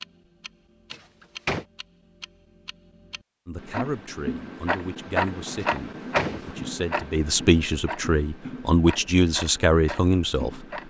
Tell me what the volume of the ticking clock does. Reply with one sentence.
The volume of the ticking clock goes up, then down.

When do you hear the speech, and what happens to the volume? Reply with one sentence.
The speech can be heard from 3.5 to 10.7 s, getting louder.